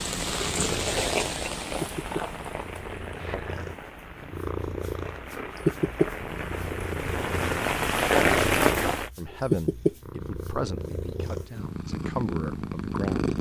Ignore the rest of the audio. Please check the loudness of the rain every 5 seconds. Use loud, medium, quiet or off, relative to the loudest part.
medium, loud, off.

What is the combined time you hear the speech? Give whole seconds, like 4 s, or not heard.
4 s.